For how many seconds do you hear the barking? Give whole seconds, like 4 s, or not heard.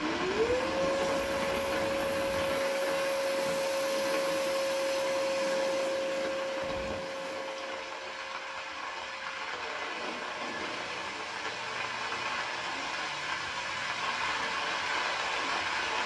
not heard.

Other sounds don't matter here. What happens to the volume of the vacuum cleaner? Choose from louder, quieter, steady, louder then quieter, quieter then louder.
quieter.